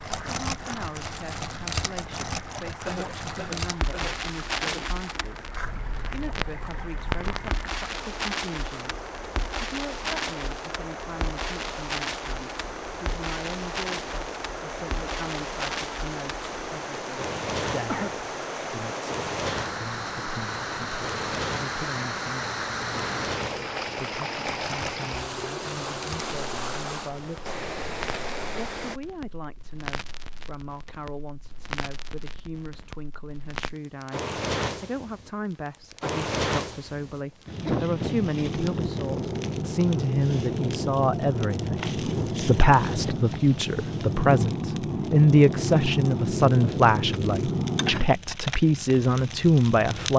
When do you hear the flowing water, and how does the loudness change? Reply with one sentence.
You can hear the flowing water from 0.0 to 29.0 s, getting louder.